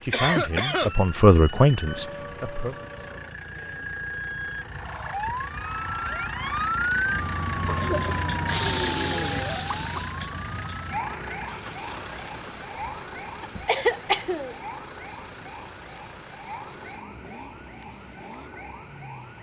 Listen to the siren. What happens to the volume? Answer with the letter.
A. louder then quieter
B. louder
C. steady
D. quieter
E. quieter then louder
A.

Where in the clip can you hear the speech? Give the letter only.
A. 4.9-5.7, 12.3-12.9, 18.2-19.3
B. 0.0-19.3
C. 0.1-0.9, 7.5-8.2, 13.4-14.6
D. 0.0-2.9
D.